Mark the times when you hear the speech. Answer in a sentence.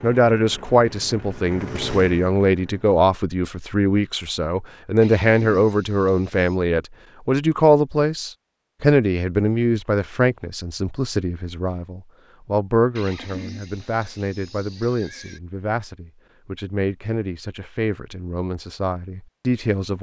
You can hear the speech from 0.0 to 19.9 s.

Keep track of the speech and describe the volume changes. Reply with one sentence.
The volume of the speech goes down.